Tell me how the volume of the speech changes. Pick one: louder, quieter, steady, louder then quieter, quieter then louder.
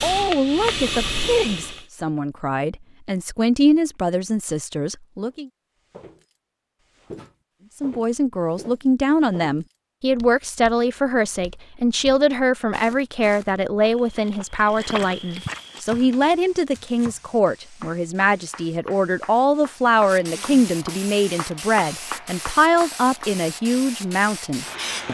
steady.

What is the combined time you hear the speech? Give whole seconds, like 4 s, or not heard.
23 s.